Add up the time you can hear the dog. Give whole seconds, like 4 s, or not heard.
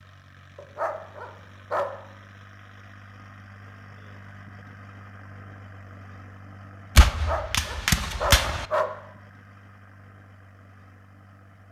3 s.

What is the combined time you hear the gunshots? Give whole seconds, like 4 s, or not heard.
2 s.